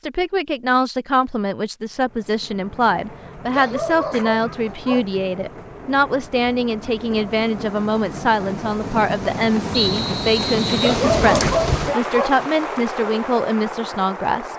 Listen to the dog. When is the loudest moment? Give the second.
11 s.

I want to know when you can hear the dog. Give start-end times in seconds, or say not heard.
3.5-5.0, 10.8-12.3.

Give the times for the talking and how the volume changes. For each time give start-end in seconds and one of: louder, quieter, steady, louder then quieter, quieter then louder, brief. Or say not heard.
0.0-14.5 steady.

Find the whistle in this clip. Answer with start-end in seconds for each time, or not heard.
9.7-11.0.